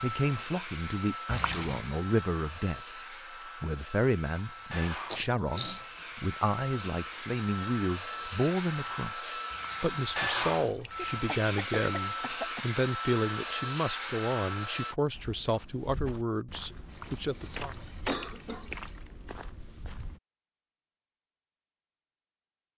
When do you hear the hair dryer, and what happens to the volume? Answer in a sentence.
The hair dryer can be heard from 0.0 to 14.9 s, getting louder.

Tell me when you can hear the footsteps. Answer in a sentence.
You can hear the footsteps from 15.1 to 20.2 s.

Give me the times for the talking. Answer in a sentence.
You can hear the talking from 0.0 to 17.8 s.